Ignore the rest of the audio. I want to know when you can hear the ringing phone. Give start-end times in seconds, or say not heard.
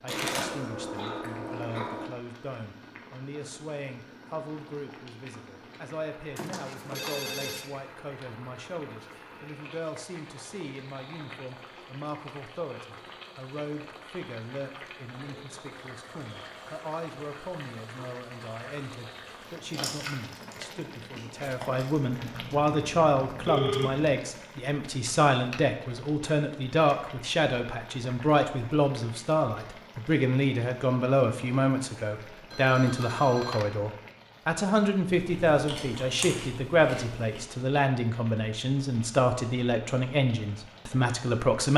6.3-7.7, 22.2-24.1, 32.5-33.6.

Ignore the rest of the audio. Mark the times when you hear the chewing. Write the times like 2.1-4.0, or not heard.
0.1-2.1, 19.6-21.9, 35.1-37.4.